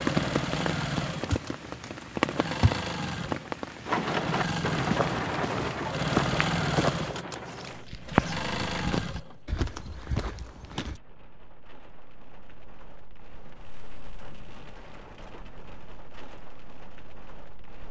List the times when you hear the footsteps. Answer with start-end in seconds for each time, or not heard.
4.7-11.0.